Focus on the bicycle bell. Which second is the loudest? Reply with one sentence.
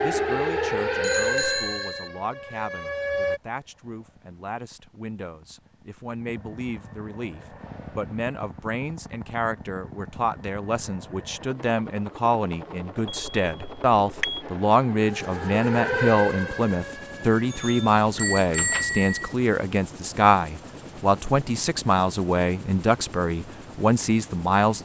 The loudest moment of the bicycle bell is at 19 seconds.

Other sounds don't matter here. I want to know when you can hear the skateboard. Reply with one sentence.
You can't hear the skateboard here.